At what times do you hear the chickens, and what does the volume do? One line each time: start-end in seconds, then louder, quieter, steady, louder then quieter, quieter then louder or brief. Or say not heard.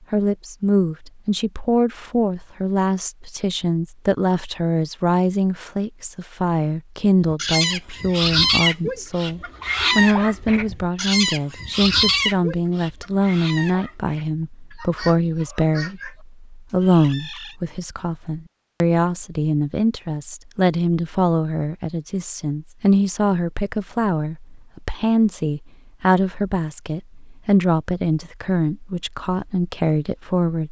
7.3-17.6 quieter.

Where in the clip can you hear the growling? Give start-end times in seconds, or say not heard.
not heard.